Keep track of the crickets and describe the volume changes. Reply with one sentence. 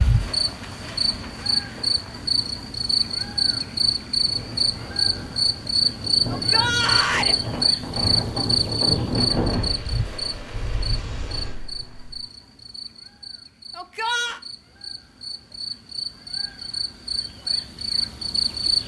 The loudness of the crickets goes down, then up.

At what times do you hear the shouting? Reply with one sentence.
You can hear the shouting from 6.2 to 7.3 s and from 13.8 to 14.4 s.